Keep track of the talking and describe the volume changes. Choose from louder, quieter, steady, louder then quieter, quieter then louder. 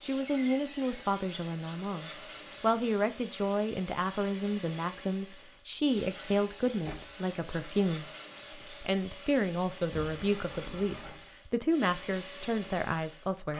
steady.